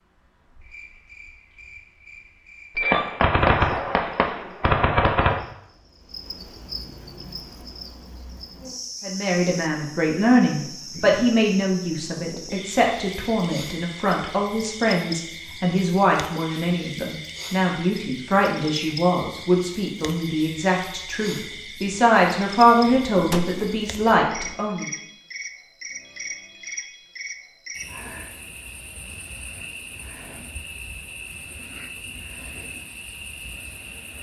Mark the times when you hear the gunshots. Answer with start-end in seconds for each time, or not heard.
2.8-5.5, 22.6-24.6.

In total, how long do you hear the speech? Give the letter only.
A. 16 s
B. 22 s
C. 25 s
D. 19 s
A.